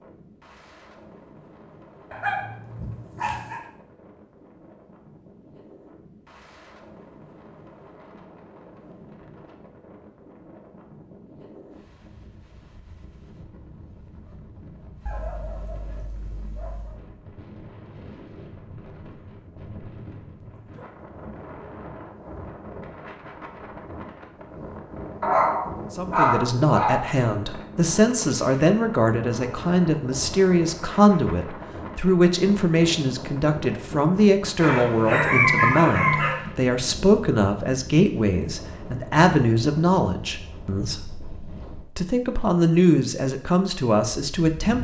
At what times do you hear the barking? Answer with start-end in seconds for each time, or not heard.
2.1-3.6, 15.1-17.0, 25.2-27.1, 34.5-36.4.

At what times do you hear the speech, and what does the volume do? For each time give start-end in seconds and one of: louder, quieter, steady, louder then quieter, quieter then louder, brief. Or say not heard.
25.9-44.7 steady.